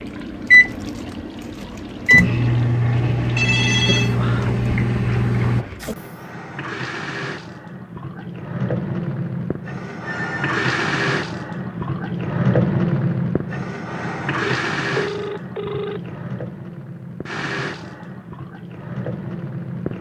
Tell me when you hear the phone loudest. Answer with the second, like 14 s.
4 s.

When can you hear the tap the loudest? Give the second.
13 s.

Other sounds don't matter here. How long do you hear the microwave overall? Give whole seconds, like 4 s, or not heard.
6 s.